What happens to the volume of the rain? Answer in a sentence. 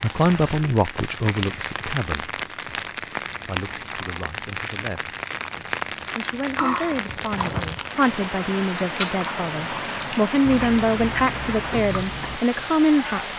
The loudness of the rain stays about the same.